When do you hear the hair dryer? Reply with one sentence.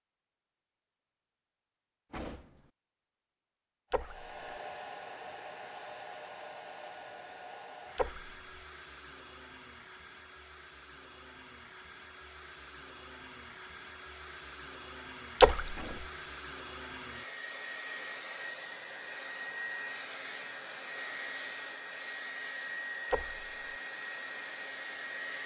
You can hear the hair dryer from 3.9 to 25.4 s.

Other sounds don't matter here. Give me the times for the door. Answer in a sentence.
You can hear the door from 2.1 to 2.7 s and from 15.7 to 16.3 s.